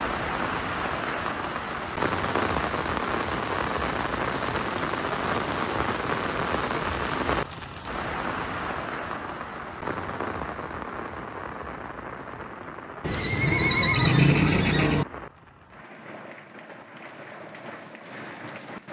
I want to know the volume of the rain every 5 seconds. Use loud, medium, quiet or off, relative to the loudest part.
loud, loud, medium, quiet.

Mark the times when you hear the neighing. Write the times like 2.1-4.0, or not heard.
13.0-15.1.